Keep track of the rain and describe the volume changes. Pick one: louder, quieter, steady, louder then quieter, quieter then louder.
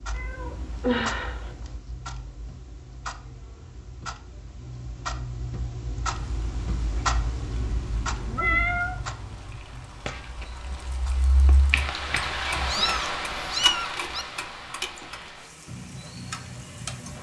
louder then quieter.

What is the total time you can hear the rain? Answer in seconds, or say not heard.
11 s.